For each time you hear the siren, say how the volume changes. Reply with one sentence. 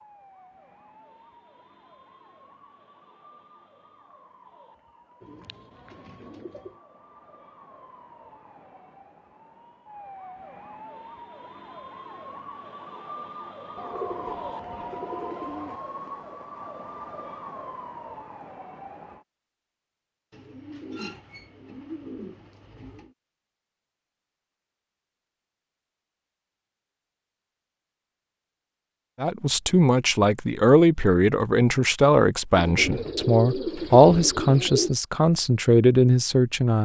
The siren can be heard from 0.0 to 19.2 s, getting louder.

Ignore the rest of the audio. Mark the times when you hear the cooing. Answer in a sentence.
You can hear the cooing from 5.2 to 6.7 s, from 13.8 to 15.8 s, from 20.3 to 23.1 s and from 32.5 to 35.0 s.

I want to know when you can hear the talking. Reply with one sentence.
You can hear the talking from 29.2 to 36.8 s.